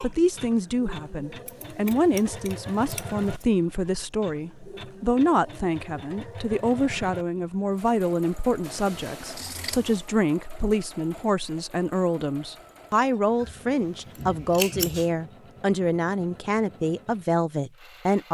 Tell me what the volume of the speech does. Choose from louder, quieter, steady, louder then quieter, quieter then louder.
steady.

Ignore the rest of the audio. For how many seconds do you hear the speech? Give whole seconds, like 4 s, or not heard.
18 s.